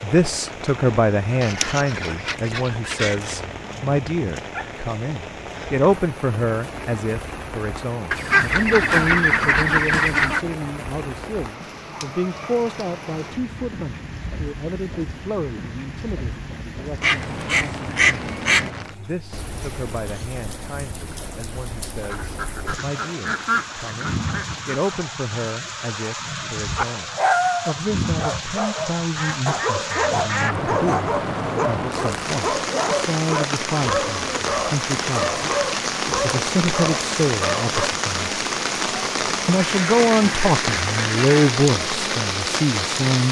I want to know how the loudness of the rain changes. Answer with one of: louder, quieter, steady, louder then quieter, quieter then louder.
louder.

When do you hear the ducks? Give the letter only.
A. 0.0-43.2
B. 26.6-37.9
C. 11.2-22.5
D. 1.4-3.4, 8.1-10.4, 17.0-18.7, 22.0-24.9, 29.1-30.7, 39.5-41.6
D.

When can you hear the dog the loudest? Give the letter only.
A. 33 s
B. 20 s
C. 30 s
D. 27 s
D.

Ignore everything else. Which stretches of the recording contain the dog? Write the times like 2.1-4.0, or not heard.
26.6-37.9.